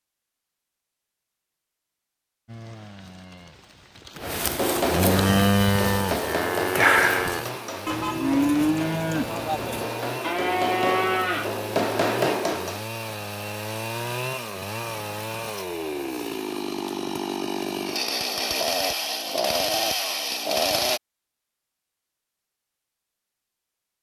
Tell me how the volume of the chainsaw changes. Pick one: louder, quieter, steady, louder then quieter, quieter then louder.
louder.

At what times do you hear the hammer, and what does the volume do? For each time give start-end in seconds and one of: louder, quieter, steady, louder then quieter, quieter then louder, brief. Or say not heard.
4.2-12.8 quieter then louder.